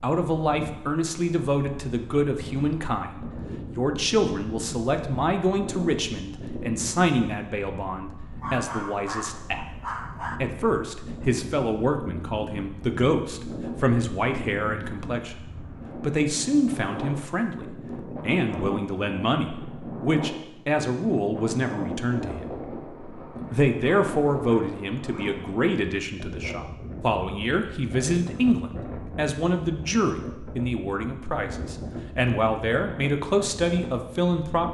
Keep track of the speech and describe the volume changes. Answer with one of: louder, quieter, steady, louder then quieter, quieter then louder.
steady.